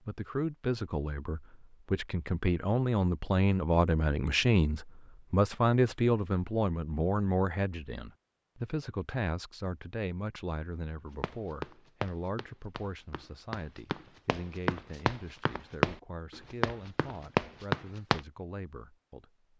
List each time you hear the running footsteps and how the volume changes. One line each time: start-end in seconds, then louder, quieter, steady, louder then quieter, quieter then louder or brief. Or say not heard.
11.2-18.2 louder.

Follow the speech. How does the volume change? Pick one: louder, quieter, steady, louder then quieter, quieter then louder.
quieter.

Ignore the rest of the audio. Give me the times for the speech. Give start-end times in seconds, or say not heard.
0.0-19.4.